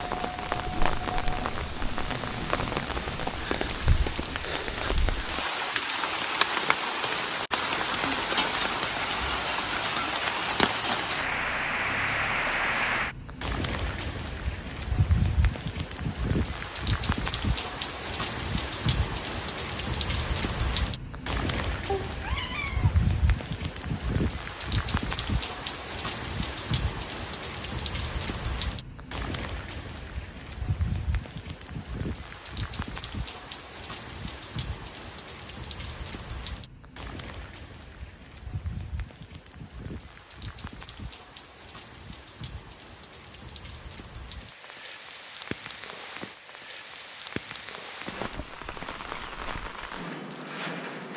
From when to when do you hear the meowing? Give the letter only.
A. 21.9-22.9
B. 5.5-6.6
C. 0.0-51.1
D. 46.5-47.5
A.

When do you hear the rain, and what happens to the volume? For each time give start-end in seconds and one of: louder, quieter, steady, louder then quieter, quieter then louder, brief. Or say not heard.
0.0-51.1 quieter.